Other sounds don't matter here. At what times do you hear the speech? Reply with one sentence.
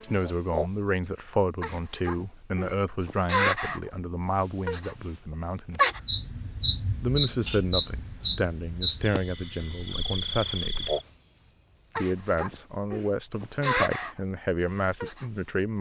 The speech can be heard from 0.0 to 5.8 s, from 7.0 to 10.9 s and from 11.9 to 15.7 s.